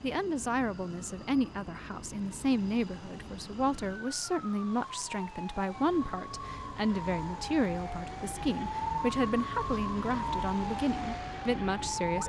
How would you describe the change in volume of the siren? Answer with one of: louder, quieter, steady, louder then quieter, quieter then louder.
louder.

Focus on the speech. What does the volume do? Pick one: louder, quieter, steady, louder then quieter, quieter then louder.
steady.